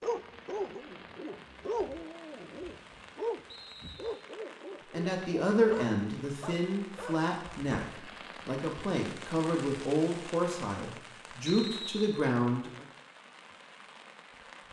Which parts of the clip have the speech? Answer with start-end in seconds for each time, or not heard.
4.9-12.8.